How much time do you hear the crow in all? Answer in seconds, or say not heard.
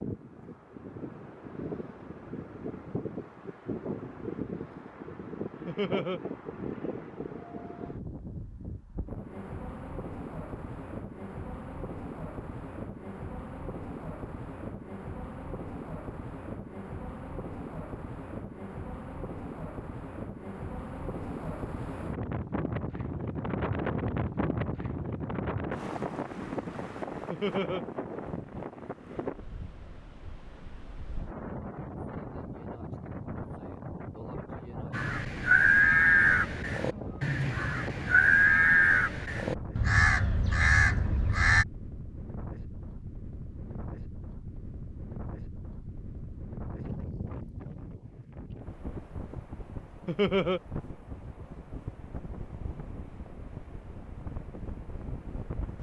7 s.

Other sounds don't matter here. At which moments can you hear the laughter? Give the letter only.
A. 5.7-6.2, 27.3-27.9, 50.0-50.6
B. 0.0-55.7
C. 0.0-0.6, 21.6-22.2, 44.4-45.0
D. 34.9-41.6
A.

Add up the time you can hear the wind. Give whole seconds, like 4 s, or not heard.
56 s.